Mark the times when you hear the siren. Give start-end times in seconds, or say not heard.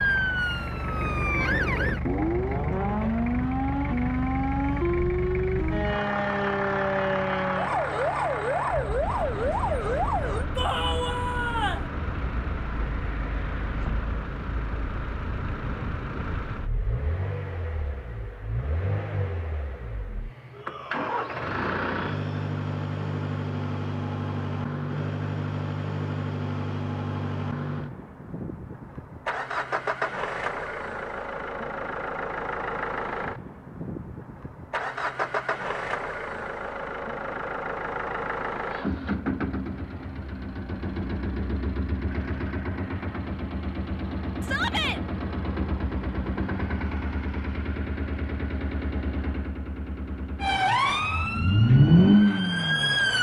0.0-10.4, 50.4-53.1.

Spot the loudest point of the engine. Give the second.
52 s.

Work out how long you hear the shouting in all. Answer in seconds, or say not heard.
4 s.